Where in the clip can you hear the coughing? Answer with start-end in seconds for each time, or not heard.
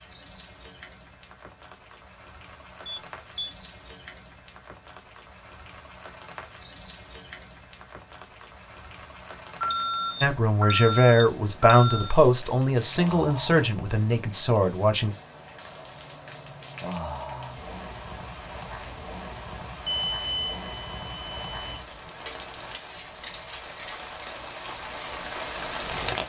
not heard.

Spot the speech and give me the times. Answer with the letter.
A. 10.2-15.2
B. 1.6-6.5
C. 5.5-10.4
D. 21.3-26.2
A.